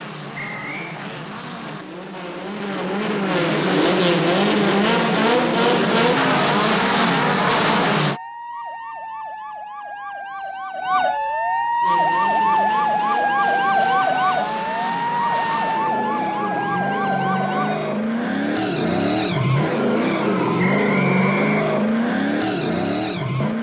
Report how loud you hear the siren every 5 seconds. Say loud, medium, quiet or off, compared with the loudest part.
off, quiet, loud, loud, off.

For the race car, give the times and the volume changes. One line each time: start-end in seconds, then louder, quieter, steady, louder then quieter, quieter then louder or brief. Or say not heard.
0.0-8.2 louder
11.8-23.5 louder.